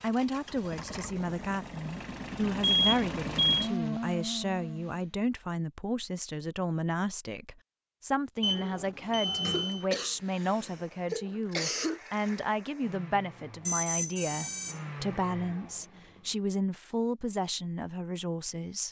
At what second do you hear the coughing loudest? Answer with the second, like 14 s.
12 s.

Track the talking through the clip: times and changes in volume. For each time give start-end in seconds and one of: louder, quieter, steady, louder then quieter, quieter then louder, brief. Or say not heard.
0.0-18.8 steady.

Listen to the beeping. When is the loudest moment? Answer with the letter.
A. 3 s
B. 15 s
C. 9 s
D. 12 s
A.